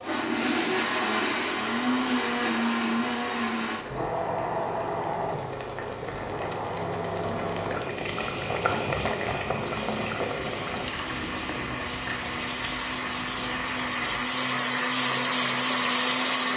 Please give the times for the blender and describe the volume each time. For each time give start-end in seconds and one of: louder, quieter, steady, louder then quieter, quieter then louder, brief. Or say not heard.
0.0-16.5 quieter then louder.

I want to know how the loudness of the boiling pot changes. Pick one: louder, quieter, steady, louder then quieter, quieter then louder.
louder then quieter.